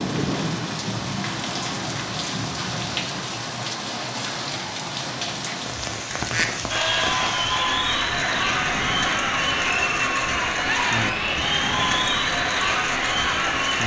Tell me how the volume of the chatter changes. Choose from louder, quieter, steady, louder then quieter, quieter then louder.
steady.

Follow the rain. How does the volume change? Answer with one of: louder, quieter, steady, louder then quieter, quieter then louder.
steady.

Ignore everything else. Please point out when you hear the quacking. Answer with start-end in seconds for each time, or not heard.
6.1-6.5.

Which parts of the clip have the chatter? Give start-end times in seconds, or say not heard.
6.7-13.8.